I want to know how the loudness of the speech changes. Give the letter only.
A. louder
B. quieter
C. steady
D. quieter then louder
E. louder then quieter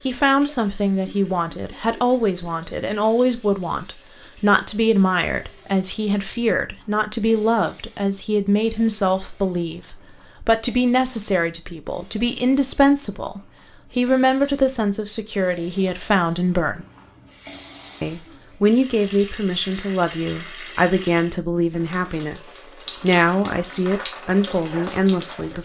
C.